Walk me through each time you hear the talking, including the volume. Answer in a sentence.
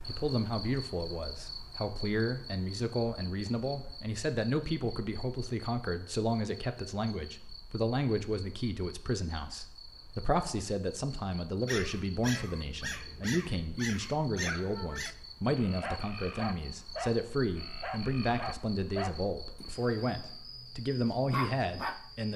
You can hear the talking from 0.0 to 22.3 s, at a steady volume.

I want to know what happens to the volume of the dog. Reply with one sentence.
The loudness of the dog stays about the same.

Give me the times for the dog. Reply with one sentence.
You can hear the dog from 11.7 to 22.0 s.